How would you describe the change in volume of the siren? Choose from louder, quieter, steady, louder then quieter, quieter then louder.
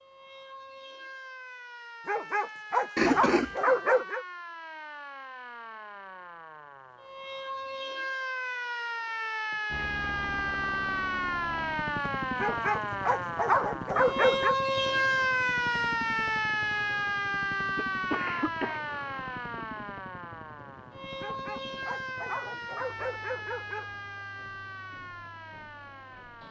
louder then quieter.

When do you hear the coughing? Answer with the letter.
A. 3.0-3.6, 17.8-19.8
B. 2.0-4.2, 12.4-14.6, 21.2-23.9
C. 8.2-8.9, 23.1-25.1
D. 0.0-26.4
A.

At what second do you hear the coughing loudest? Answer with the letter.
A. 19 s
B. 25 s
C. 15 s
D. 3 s
D.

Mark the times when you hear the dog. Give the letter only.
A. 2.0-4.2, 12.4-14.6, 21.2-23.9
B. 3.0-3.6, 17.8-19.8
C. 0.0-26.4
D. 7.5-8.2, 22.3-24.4
A.